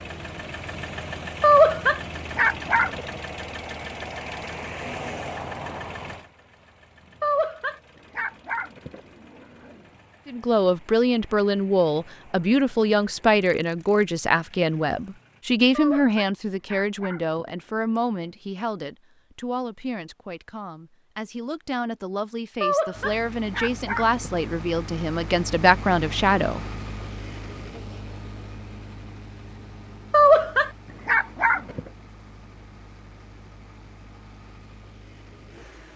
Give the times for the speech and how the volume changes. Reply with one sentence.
The speech can be heard from 10.2 to 26.6 s, getting quieter then louder.